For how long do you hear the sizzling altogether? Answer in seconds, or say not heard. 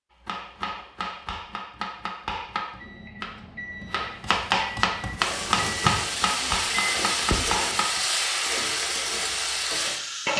5 s.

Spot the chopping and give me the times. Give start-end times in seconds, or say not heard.
0.2-8.0.